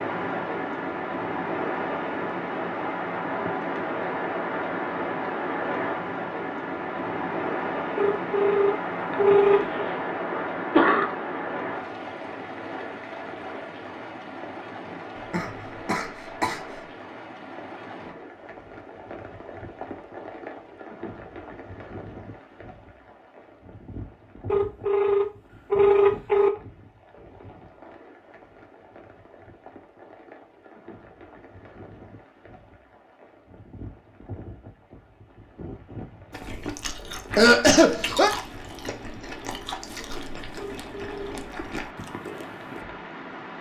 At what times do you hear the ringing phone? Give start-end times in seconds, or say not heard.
8.0-9.8, 24.4-26.5, 40.5-41.4.